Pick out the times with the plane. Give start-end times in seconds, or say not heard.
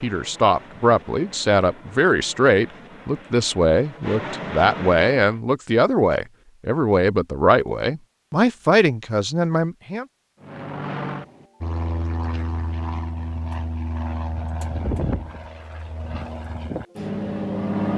0.0-5.4, 10.4-17.9.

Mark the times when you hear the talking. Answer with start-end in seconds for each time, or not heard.
0.0-10.1.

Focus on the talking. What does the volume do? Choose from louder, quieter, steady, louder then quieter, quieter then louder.
steady.